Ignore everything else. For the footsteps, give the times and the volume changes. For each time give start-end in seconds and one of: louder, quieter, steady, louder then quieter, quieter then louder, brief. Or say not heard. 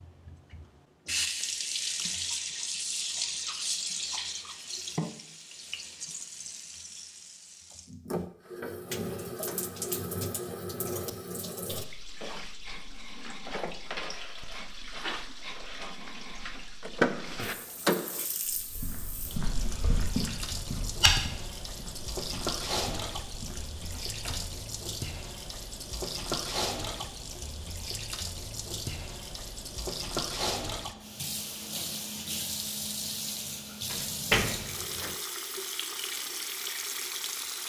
18.4-24.6 louder then quieter.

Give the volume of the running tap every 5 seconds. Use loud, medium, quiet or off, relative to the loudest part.
loud, medium, medium, medium, loud, loud, loud, loud.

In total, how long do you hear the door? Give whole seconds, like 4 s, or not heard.
4 s.